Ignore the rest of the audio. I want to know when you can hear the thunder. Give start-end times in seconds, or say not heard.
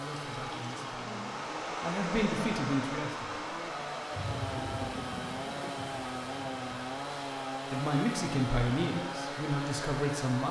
4.1-6.7.